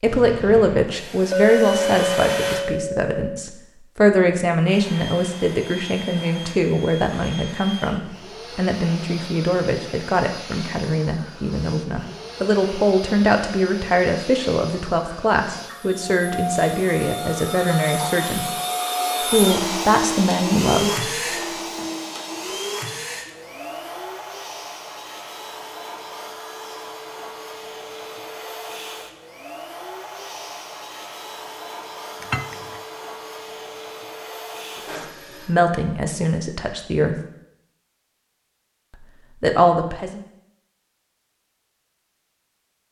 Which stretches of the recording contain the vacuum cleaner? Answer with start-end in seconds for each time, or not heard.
0.0-2.6, 4.7-35.5.